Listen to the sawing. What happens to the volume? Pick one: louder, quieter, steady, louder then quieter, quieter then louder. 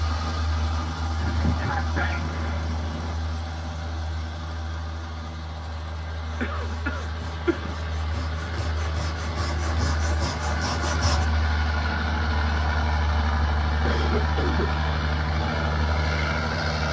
louder.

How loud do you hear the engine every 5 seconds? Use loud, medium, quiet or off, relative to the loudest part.
medium, medium, loud, loud.